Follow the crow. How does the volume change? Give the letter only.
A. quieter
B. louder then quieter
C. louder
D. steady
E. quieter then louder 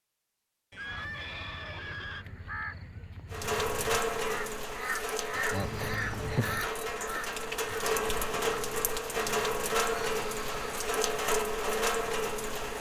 C.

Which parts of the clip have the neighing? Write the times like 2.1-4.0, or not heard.
0.7-2.2, 5.6-6.7, 9.8-10.9.